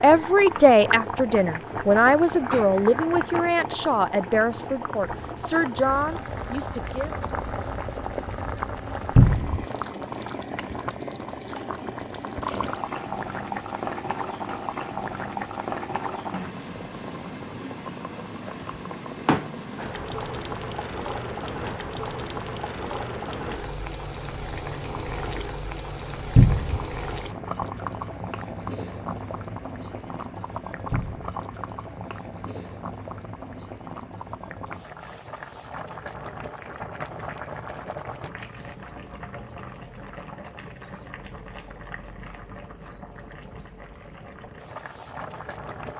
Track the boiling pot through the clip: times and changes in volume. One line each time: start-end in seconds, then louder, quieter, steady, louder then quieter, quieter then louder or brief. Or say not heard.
0.0-45.9 quieter.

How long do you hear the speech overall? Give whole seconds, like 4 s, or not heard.
7 s.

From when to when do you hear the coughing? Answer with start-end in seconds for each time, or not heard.
not heard.